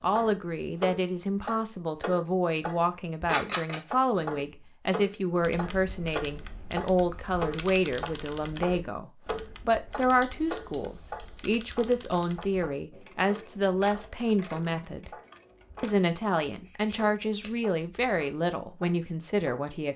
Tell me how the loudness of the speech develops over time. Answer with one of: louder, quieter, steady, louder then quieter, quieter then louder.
steady.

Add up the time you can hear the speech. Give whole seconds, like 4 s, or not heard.
19 s.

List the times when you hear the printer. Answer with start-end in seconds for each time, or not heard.
not heard.